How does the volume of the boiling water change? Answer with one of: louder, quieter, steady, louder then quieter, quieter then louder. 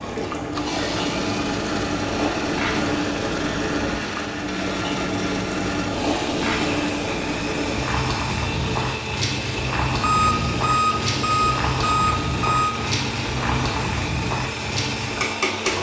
steady.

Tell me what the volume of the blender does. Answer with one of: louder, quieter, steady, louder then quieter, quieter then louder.
steady.